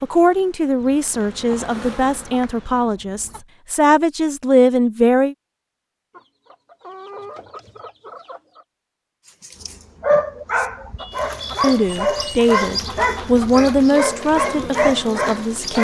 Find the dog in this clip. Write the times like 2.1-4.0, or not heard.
9.4-15.7.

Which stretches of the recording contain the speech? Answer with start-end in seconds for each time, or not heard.
0.0-5.3, 11.6-15.7.